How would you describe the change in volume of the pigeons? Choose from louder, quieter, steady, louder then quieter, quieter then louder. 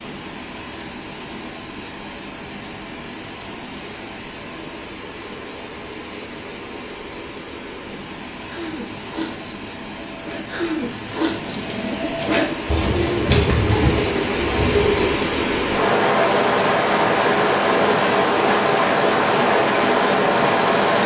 louder.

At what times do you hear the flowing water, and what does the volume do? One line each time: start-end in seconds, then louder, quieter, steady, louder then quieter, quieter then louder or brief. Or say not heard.
0.0-21.0 louder.